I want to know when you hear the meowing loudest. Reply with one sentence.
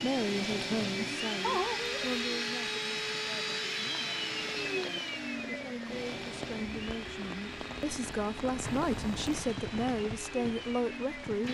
The loudest moment of the meowing is at 2 seconds.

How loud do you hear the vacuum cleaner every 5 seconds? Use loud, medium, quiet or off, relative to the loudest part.
loud, medium, medium.